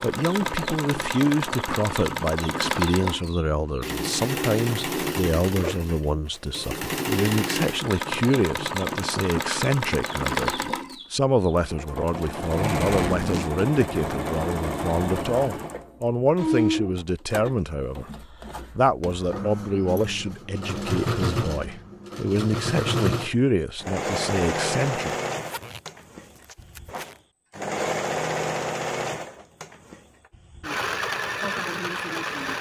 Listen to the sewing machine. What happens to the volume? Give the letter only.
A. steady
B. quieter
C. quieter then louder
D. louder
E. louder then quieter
A.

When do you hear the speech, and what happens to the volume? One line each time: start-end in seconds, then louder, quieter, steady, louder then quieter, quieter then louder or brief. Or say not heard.
0.0-25.1 steady.